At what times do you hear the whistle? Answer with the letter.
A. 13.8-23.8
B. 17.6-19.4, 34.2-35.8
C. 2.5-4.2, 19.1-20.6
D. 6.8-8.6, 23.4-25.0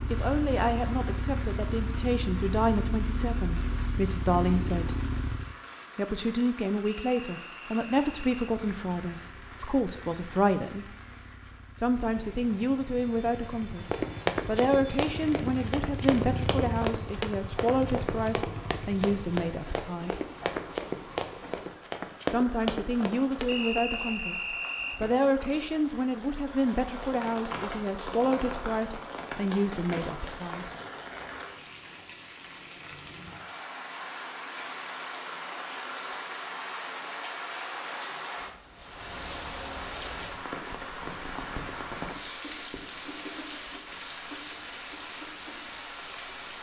D.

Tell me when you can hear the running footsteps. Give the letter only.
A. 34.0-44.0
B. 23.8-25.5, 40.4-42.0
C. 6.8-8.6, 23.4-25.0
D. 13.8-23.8
D.